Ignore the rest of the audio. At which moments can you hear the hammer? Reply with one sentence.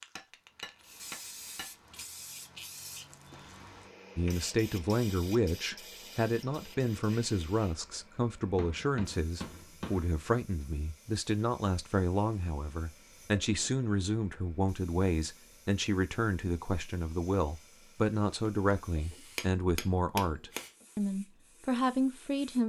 You can hear the hammer from 0.1 to 1.7 s, from 8.4 to 10.2 s and from 18.7 to 20.6 s.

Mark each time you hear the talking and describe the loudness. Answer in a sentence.
The talking can be heard from 4.2 to 22.6 s, at a steady volume.